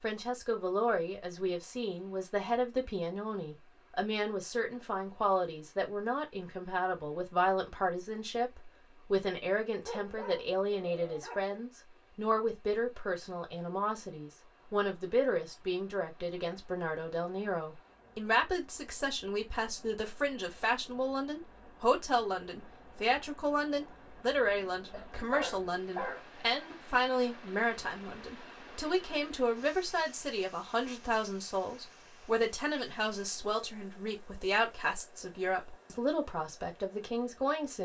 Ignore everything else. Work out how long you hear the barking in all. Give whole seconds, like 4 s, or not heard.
3 s.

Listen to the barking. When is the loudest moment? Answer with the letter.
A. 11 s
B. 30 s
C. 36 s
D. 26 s
D.